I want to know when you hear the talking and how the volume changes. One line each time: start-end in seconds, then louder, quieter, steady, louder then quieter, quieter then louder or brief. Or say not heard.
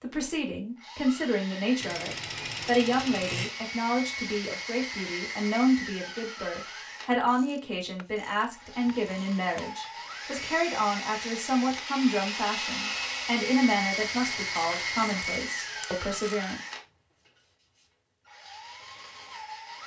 0.0-16.6 steady.